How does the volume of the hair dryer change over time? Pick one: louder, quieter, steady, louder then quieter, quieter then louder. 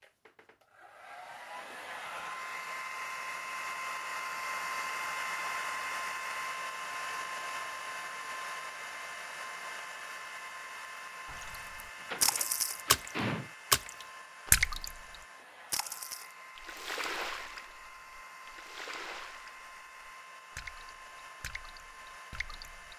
quieter.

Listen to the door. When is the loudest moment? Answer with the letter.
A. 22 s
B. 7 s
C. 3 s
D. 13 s
D.